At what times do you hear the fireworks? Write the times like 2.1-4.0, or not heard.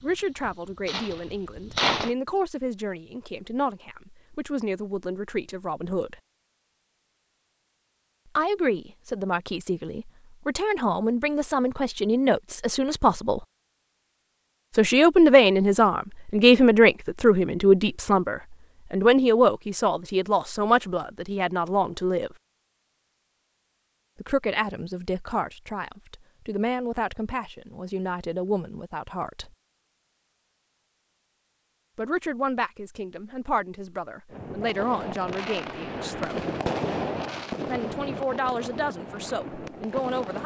0.0-2.1, 34.3-40.4.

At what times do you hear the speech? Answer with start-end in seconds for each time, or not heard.
0.0-6.2, 8.3-13.4, 14.8-22.4, 24.2-29.5, 31.9-36.5, 37.6-40.4.